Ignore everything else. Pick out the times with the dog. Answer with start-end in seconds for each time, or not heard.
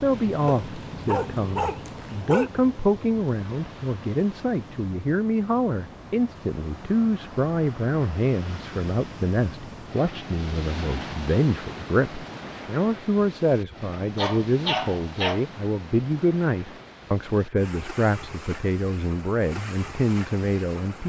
0.5-2.5, 13.9-15.4.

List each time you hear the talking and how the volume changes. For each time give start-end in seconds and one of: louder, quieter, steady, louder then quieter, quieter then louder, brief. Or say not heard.
0.0-21.0 steady.